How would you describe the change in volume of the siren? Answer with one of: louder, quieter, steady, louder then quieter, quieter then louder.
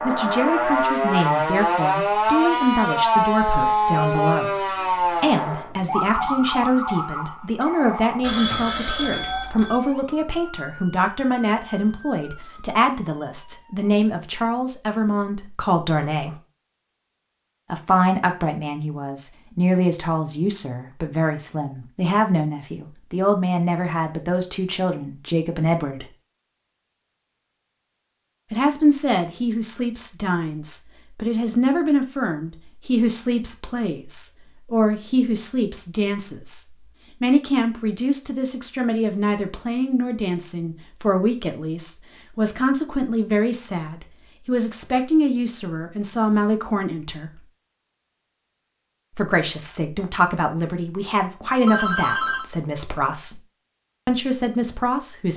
quieter.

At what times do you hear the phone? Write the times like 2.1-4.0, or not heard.
8.2-9.8, 51.6-52.5.